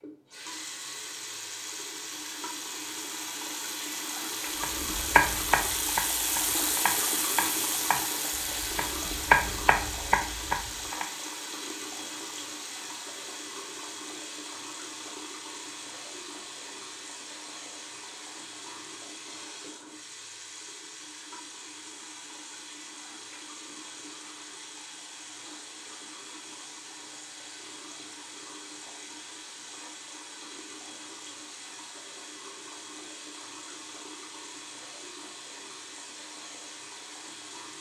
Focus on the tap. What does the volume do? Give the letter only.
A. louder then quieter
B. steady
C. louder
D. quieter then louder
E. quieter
E.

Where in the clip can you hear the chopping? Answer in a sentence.
The chopping can be heard from 4.6 to 11.1 s.